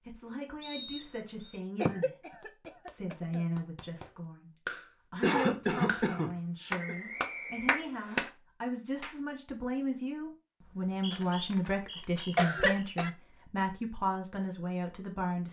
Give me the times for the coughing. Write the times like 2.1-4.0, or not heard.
1.8-3.5, 5.2-7.0, 11.1-13.1.